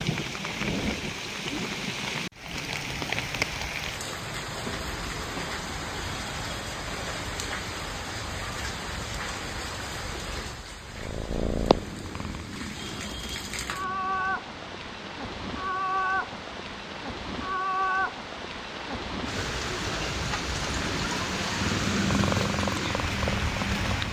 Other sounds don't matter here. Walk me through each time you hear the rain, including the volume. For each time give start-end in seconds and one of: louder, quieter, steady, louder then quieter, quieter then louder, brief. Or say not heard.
0.0-24.0 steady.